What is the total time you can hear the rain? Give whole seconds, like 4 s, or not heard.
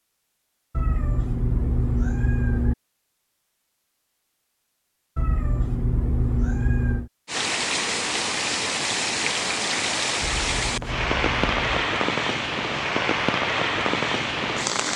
8 s.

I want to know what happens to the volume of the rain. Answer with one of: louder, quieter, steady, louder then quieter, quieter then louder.
steady.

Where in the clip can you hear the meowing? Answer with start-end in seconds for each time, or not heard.
0.7-2.8, 5.2-7.1, 10.2-11.8.